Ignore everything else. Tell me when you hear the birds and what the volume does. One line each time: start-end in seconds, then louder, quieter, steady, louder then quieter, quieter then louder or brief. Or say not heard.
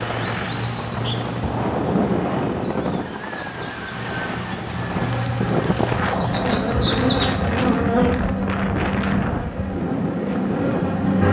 0.0-7.4 quieter then louder.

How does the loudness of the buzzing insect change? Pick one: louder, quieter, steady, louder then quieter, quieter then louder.
louder then quieter.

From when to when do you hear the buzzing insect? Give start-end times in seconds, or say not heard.
5.0-11.2.